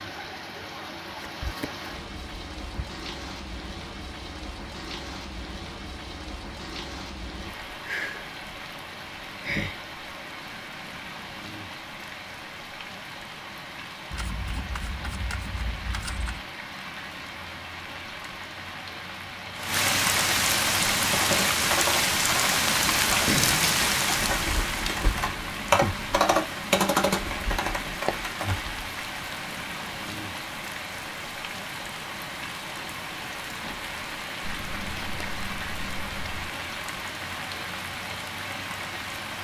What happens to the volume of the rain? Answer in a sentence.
The volume of the rain goes up, then down.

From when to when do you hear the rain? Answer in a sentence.
The rain can be heard from 0.0 to 39.3 s.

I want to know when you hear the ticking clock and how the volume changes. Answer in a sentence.
You can't hear the ticking clock here.